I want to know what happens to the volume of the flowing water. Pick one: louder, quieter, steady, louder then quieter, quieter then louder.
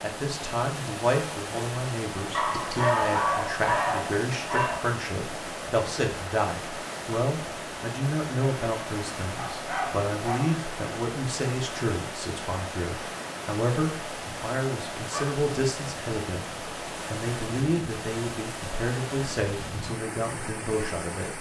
steady.